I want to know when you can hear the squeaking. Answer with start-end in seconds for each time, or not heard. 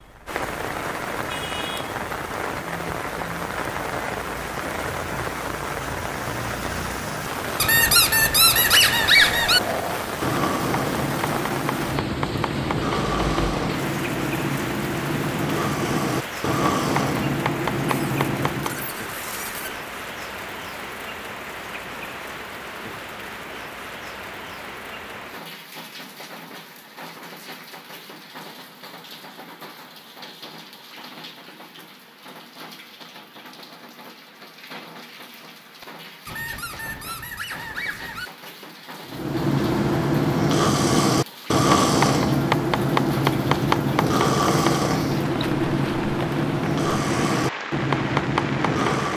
7.6-9.6, 17.9-19.8, 36.2-38.3.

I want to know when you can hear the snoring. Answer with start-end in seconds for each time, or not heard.
9.2-18.9, 39.0-49.1.